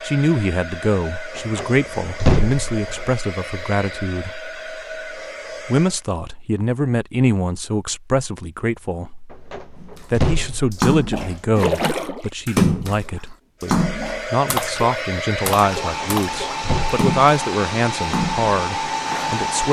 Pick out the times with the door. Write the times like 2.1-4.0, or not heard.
1.4-3.1, 9.3-11.0, 16.0-17.1.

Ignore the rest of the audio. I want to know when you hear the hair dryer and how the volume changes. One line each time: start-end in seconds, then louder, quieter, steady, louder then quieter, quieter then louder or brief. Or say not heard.
0.0-6.0 steady
13.6-19.6 steady.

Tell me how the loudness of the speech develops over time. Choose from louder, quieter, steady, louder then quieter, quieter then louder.
steady.